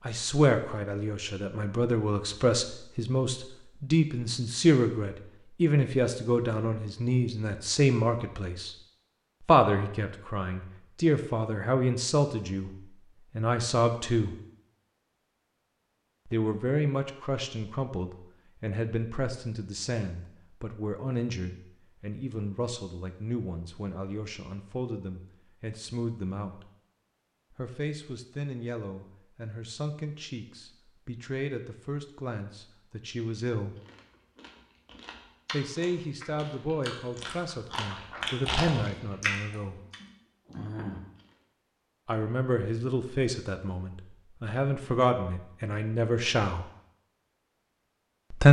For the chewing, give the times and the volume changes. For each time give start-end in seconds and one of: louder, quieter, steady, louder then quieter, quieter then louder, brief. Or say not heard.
33.8-41.2 louder then quieter.